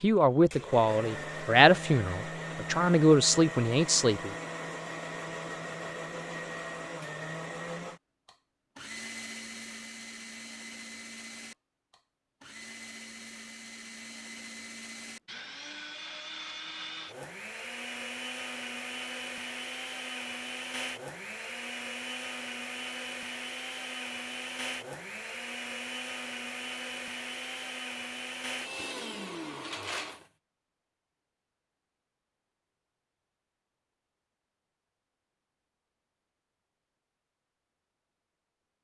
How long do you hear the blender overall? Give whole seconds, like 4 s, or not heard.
30 s.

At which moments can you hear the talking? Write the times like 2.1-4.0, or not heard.
0.0-4.3.